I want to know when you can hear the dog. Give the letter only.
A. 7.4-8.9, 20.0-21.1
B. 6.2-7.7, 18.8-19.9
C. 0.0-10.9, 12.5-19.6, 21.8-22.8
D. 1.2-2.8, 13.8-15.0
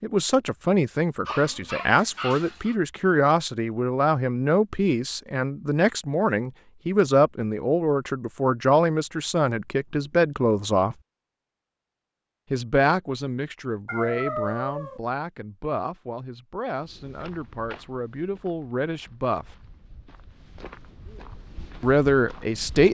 D.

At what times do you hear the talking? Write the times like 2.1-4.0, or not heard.
0.0-10.9, 12.5-19.6, 21.8-22.8.